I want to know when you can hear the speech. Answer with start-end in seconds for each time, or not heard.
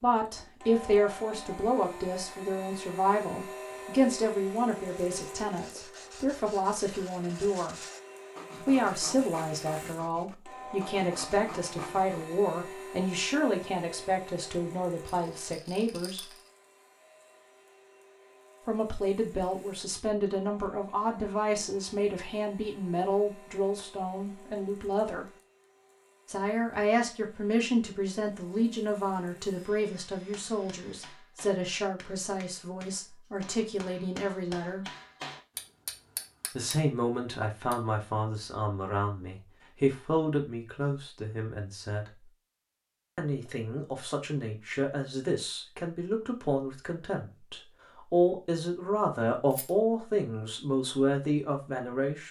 0.0-7.8, 8.6-16.3, 18.6-25.2, 26.2-34.9, 36.5-42.3, 43.1-52.2.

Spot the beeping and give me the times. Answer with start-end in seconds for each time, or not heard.
not heard.